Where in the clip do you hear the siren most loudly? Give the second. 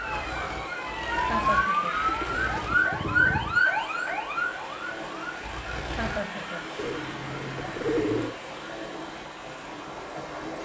3 s.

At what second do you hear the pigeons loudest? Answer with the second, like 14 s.
8 s.